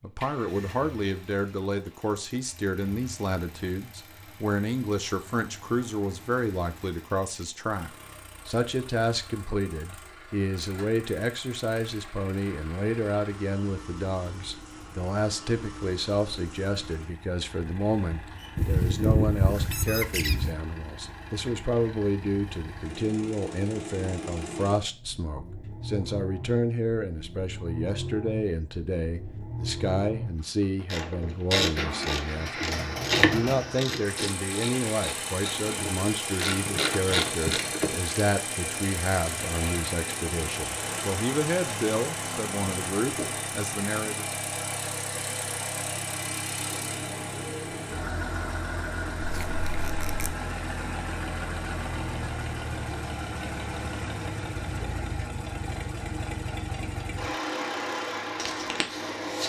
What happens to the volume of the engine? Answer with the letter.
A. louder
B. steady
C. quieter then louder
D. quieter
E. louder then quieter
A.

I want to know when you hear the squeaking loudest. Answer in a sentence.
The loudest moment of the squeaking is at 19 seconds.